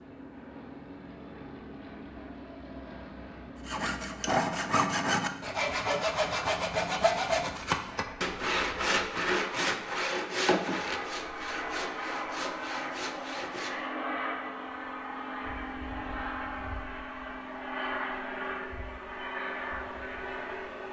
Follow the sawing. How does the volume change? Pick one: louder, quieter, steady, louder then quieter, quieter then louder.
quieter.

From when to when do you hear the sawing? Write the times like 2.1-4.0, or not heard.
3.6-13.8.